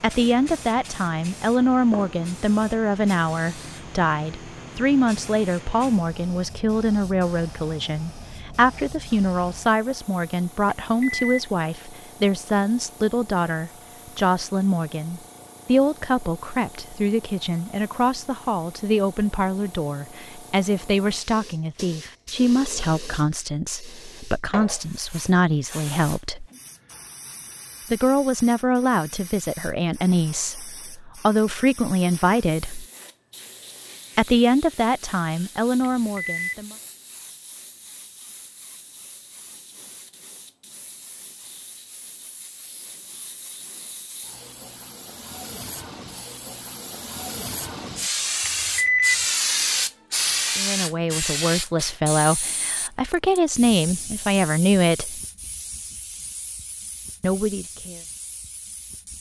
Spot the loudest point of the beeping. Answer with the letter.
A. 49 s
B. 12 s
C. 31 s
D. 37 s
A.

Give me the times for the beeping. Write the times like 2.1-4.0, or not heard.
10.9-11.4, 35.8-36.5, 48.5-49.1.